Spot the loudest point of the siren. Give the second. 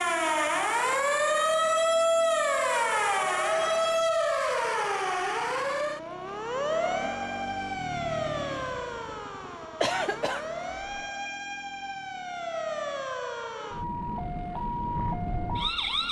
2 s.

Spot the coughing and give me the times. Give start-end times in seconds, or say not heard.
9.8-11.1.